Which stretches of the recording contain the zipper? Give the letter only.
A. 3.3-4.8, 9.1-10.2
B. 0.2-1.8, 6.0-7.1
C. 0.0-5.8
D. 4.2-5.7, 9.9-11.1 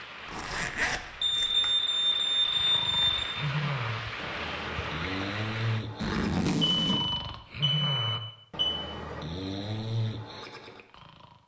B.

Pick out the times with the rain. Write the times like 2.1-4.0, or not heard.
0.0-5.8.